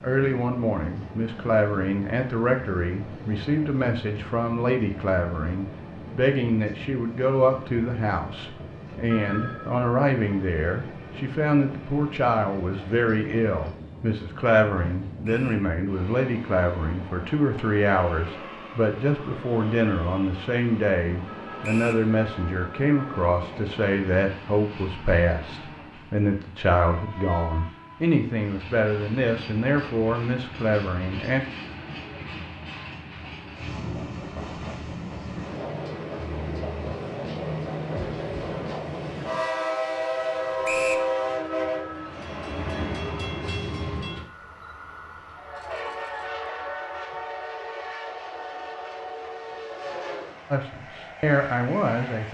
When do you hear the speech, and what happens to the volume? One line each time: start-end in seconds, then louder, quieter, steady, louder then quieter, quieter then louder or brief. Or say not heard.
0.0-31.4 steady
50.5-52.2 brief.